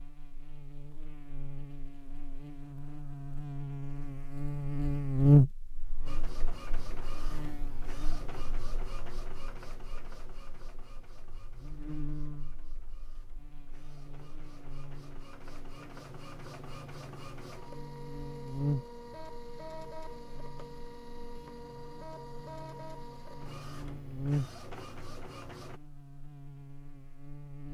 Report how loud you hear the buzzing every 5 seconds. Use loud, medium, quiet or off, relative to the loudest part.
quiet, loud, quiet, quiet, quiet, quiet.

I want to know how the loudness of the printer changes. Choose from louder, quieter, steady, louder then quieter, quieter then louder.
quieter then louder.